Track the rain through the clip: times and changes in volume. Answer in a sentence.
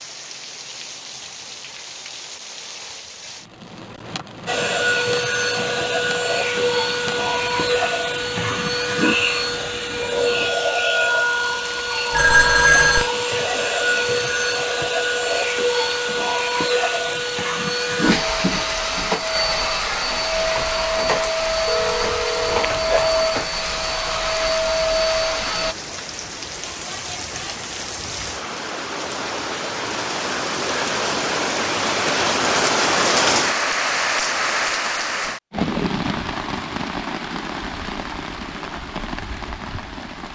You can hear the rain from 0.0 to 40.2 s, getting louder.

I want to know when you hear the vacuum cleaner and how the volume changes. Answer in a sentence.
The vacuum cleaner can be heard from 4.5 to 25.8 s, at a steady volume.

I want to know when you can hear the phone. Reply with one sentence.
The phone can be heard from 12.1 to 13.1 s and from 21.6 to 23.0 s.